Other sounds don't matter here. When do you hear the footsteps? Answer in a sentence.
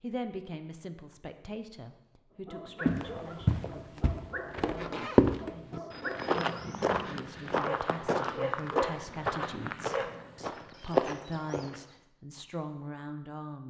The footsteps can be heard from 2.9 to 11.9 s.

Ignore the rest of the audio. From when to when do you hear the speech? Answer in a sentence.
You can hear the speech from 0.0 to 13.6 s.